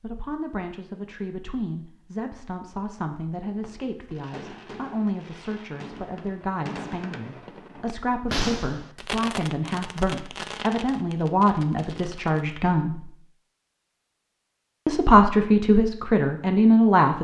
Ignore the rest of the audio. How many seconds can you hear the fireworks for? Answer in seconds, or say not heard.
9 s.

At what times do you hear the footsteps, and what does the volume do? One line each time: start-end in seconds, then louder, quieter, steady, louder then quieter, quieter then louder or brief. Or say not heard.
not heard.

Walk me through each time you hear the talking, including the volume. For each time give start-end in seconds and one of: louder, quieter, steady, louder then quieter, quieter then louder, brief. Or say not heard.
0.0-13.1 louder
14.8-17.1 brief.